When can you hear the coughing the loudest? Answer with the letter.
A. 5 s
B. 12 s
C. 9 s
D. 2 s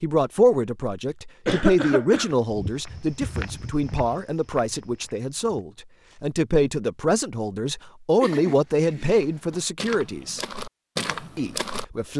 D.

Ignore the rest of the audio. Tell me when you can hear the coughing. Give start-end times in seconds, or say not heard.
1.4-2.3, 8.2-9.4.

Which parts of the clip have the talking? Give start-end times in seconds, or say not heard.
0.0-10.4, 11.3-12.1.